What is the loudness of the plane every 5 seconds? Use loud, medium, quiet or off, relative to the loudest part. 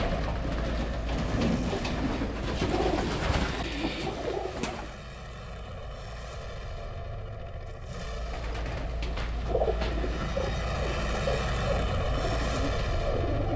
medium, medium, loud.